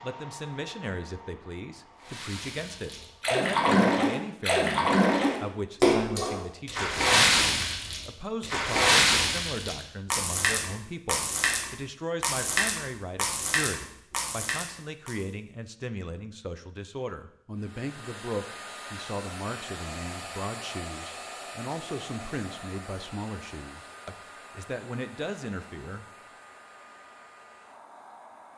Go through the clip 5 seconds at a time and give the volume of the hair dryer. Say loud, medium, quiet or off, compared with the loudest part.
medium, off, off, loud, loud, medium.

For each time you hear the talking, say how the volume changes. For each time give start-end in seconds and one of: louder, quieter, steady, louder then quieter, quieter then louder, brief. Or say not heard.
0.0-26.1 steady.